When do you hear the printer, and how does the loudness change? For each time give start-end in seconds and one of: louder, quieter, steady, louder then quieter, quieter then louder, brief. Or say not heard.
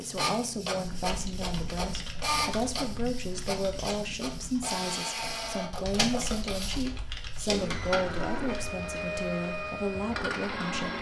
0.0-10.9 steady.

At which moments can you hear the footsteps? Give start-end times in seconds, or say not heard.
not heard.